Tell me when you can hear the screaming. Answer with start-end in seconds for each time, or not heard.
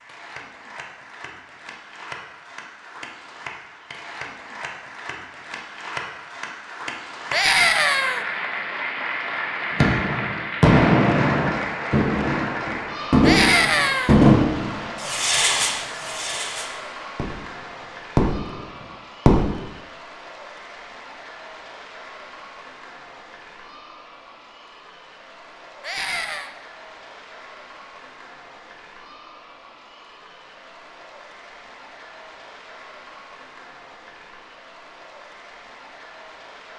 7.3-8.2, 13.2-14.2, 25.8-26.5.